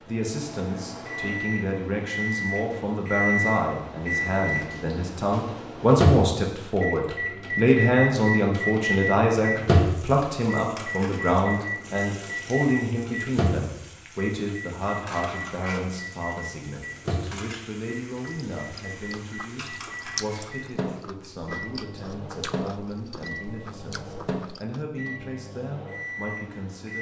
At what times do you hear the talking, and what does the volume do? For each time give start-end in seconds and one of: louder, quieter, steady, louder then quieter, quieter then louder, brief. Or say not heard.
0.0-26.9 louder then quieter.